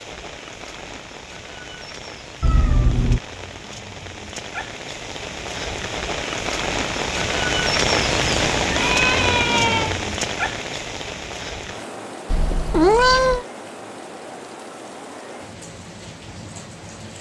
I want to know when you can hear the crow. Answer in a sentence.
The crow can't be heard in this clip.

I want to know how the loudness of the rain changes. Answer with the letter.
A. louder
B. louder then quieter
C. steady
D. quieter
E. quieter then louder
B.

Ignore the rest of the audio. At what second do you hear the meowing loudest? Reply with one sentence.
The volume of the meowing peaks at 13 seconds.